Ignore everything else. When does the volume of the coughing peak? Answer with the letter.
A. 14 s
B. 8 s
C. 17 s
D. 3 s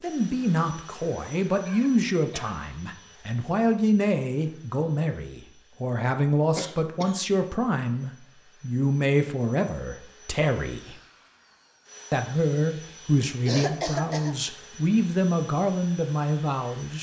A.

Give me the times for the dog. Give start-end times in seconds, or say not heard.
not heard.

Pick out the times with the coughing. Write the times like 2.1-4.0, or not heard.
1.6-2.6, 6.5-7.2, 13.4-14.3.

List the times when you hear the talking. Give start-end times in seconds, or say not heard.
0.0-10.9, 12.1-16.9.